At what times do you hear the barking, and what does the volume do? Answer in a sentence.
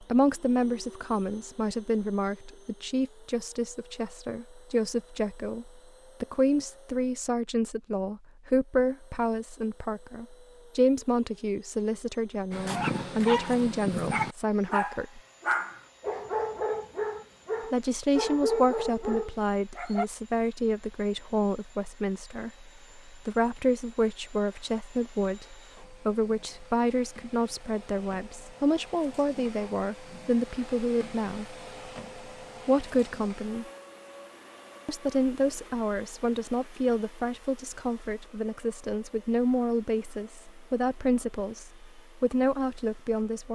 The barking can be heard from 12.5 to 20.1 s, at a steady volume.